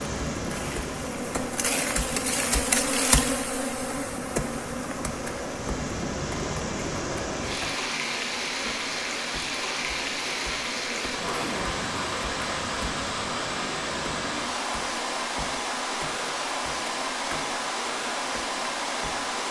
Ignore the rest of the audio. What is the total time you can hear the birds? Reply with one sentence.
The birds can't be heard in this clip.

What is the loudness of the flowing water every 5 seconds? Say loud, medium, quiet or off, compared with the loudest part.
medium, loud, loud, loud.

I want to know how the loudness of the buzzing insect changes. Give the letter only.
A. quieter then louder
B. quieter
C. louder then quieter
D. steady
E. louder
B.